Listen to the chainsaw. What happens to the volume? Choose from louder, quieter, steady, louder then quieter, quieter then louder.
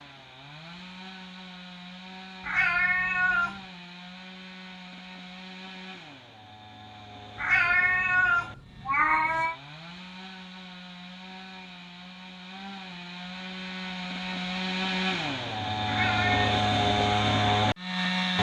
louder.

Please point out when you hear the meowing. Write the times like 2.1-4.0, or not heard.
2.4-3.6, 7.3-9.6, 15.8-16.5.